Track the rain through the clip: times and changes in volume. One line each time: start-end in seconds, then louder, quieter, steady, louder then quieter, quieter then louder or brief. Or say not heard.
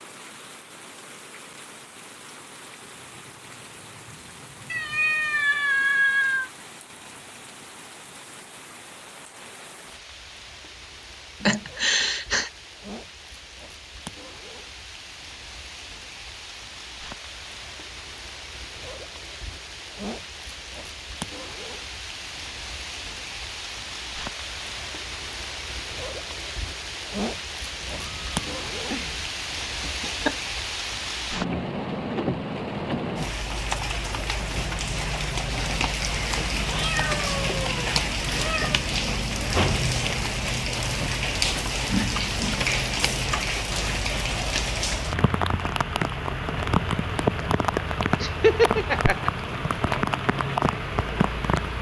0.0-51.7 louder.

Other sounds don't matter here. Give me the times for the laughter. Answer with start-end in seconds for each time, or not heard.
11.4-12.5, 29.6-30.4, 48.2-49.3.